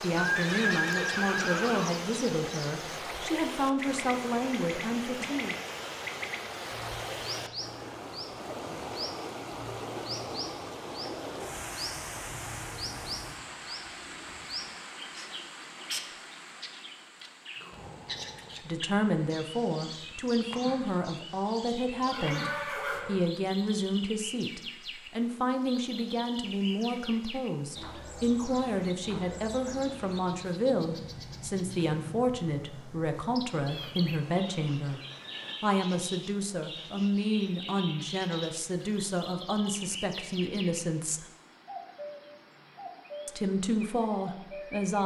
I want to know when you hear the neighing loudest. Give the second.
1 s.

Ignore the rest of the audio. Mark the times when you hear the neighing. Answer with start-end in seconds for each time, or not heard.
0.1-1.9, 21.9-23.3, 33.6-35.5.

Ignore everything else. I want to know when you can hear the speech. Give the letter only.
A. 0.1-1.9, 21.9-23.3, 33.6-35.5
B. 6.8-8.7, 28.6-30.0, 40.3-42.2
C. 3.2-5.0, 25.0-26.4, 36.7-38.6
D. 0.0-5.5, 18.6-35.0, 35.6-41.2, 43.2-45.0
D.